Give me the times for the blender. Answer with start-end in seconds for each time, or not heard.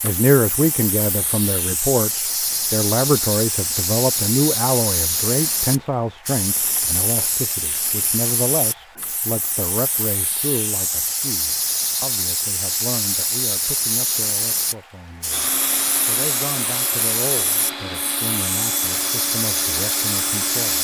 15.3-20.7.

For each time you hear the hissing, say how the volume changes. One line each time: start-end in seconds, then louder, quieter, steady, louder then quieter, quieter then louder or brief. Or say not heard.
0.0-20.7 steady.